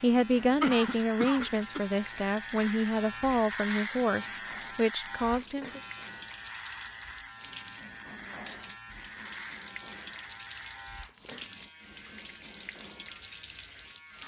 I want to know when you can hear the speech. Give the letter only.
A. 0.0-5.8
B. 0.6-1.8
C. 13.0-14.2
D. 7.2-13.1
A.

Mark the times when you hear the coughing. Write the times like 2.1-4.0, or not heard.
0.6-1.8.